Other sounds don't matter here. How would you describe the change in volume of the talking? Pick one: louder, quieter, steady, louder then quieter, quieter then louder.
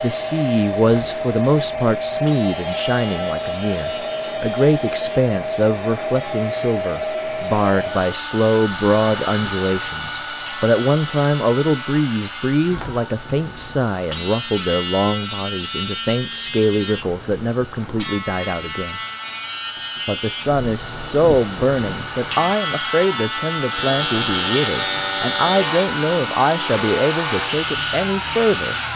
steady.